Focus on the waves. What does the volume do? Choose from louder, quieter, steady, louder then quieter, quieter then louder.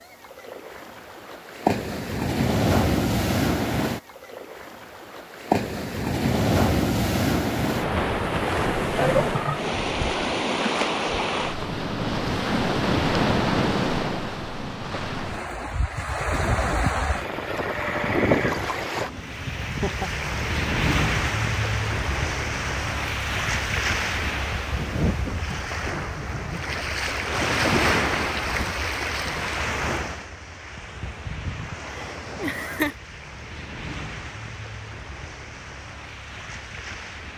quieter.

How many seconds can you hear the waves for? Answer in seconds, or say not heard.
37 s.